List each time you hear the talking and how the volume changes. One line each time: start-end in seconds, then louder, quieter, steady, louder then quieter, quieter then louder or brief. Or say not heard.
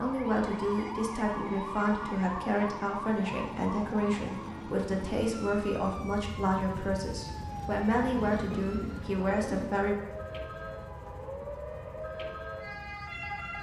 0.0-9.9 steady.